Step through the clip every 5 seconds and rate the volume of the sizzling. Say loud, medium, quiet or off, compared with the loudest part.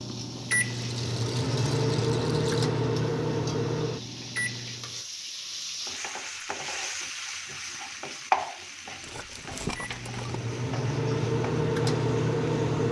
medium, loud, quiet.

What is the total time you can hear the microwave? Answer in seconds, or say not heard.
8 s.